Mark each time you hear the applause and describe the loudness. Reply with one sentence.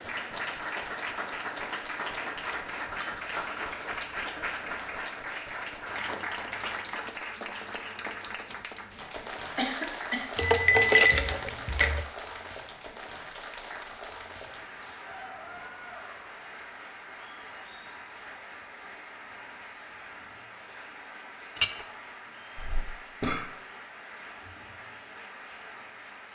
The applause can be heard from 0.0 to 26.3 s, getting quieter.